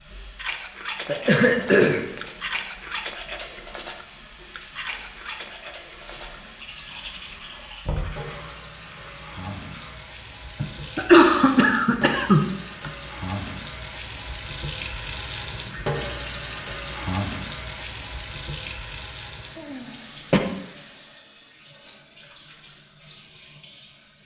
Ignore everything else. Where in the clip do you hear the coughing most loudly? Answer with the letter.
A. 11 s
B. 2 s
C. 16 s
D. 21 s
A.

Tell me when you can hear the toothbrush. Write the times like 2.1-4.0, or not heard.
0.3-9.9.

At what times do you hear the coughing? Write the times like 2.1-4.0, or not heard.
1.1-2.2, 10.6-12.9, 19.6-20.4.